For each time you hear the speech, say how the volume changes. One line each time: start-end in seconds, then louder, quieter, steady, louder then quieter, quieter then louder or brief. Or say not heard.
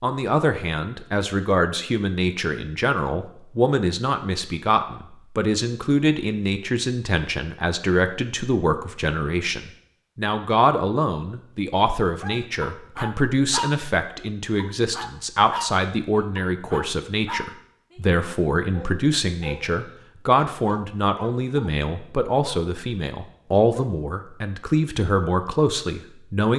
0.0-26.5 steady.